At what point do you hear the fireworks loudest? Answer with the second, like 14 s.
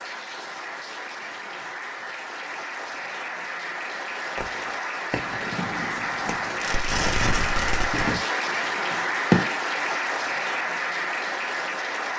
9 s.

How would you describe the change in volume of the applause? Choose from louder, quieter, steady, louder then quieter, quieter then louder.
louder.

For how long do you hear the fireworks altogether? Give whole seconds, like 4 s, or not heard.
5 s.